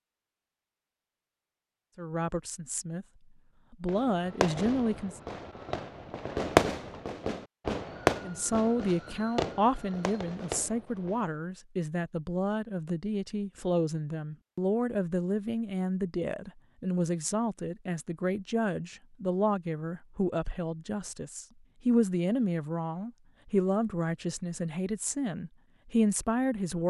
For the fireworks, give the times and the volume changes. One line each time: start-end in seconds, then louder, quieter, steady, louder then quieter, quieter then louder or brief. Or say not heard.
3.9-11.2 louder then quieter.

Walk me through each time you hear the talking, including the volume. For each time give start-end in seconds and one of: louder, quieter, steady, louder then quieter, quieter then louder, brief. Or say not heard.
1.9-3.0 brief
3.7-5.2 brief
8.2-26.8 steady.